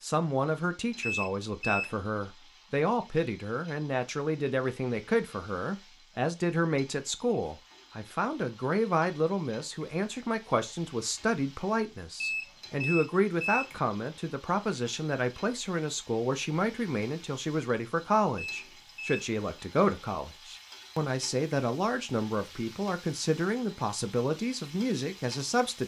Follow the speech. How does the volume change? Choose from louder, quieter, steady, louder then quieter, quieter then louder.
steady.